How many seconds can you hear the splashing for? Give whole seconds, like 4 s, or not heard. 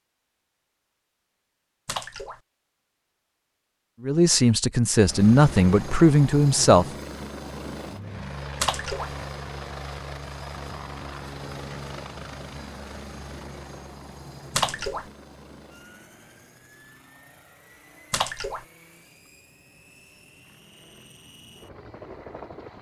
2 s.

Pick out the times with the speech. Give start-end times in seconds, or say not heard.
4.0-6.8.